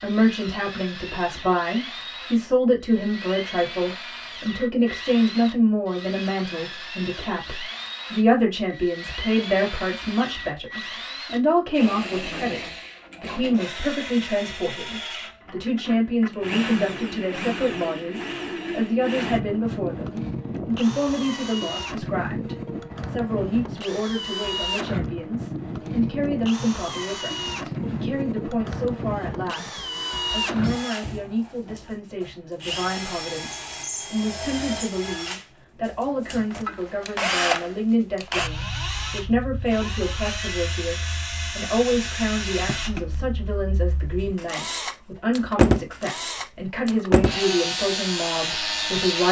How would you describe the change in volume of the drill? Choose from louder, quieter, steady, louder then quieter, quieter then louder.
louder.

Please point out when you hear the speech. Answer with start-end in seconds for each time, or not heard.
0.0-49.2.